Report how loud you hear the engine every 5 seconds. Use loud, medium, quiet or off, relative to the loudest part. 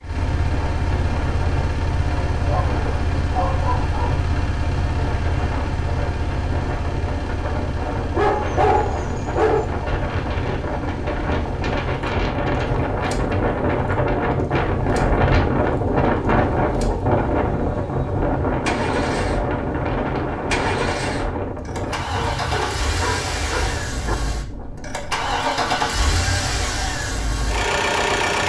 medium, medium, quiet, medium, medium, loud.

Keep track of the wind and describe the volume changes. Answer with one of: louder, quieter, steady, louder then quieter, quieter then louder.
louder then quieter.